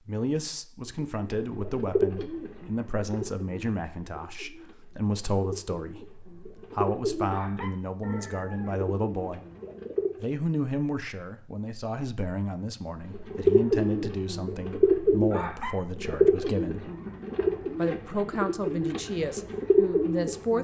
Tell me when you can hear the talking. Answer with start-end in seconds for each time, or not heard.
0.1-9.4, 10.2-16.9, 17.8-20.5.